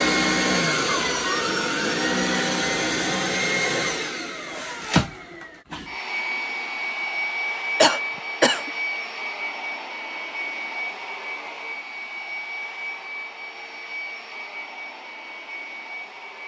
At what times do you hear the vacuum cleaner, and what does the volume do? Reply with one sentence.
The vacuum cleaner can be heard from 0.0 to 16.4 s, getting quieter.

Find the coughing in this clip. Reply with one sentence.
The coughing can be heard from 7.8 to 8.7 s.